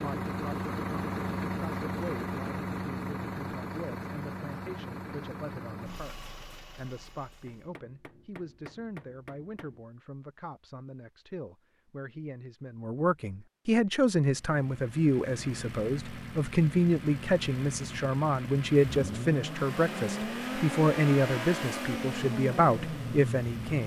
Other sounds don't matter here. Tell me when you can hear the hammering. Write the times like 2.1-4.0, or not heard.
7.5-9.8.